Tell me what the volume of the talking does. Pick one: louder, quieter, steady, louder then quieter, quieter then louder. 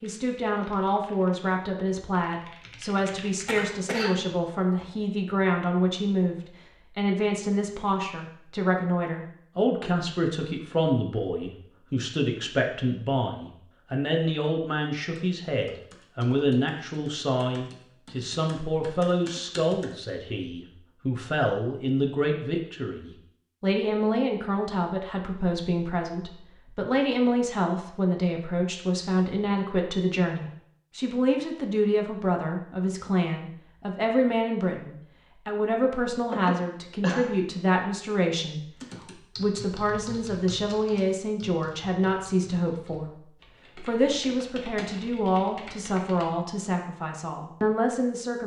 steady.